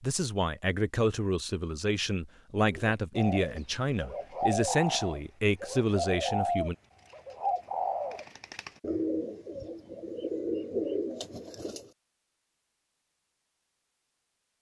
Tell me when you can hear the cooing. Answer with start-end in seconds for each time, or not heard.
2.7-11.9.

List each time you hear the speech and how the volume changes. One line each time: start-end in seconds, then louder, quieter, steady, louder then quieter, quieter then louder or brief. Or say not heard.
0.0-6.8 steady.